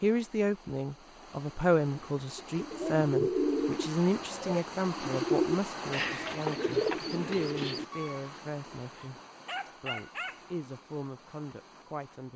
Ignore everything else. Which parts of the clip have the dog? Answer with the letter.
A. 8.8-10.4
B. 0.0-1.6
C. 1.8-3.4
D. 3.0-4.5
A.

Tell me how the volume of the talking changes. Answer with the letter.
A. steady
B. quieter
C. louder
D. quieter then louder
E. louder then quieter
B.